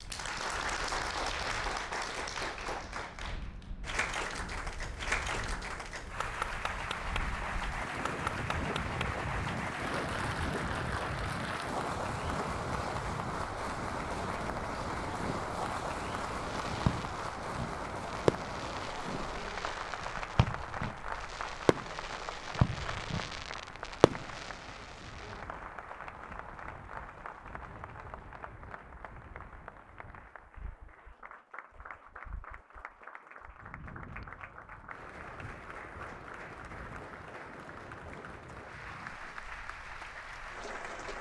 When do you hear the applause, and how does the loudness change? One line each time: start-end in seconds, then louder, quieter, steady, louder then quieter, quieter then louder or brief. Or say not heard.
0.0-41.1 quieter.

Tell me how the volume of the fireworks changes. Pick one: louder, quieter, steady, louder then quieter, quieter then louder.
quieter then louder.